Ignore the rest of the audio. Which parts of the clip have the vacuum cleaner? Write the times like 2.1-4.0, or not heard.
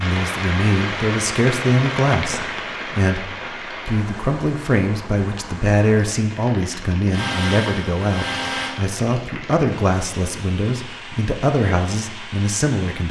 7.1-8.8.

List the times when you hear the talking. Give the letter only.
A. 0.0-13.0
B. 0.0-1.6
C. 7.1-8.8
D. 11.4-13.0
A.